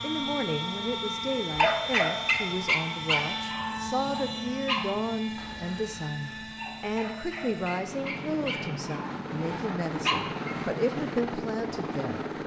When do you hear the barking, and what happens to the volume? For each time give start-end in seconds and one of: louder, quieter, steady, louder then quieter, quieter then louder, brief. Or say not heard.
1.6-10.7 quieter then louder.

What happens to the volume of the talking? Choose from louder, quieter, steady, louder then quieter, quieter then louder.
steady.